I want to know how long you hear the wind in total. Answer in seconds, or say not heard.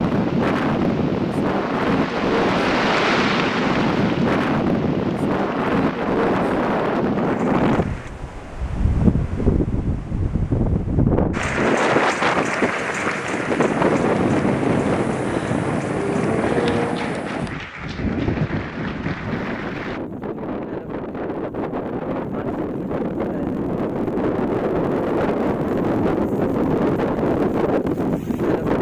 29 s.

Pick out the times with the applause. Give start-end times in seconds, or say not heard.
0.0-8.2, 11.3-20.0.